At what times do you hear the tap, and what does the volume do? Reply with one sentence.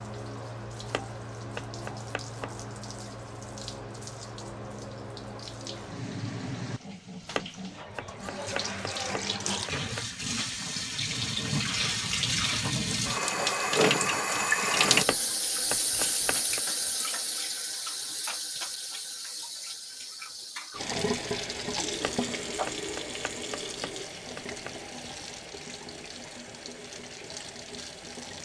The tap can be heard from 0.0 to 28.4 s, getting louder then quieter.